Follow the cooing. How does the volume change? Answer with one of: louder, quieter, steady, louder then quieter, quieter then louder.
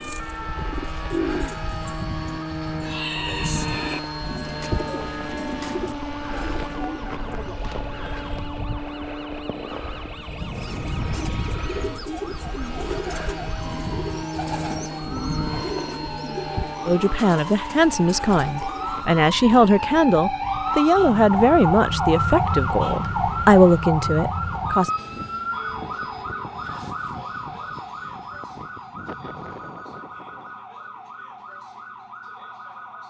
quieter.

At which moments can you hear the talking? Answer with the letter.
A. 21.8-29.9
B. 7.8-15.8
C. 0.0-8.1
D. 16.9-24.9
D.